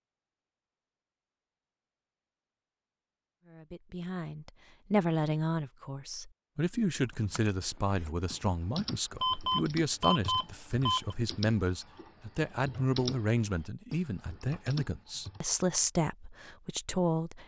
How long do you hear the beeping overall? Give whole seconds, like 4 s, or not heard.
2 s.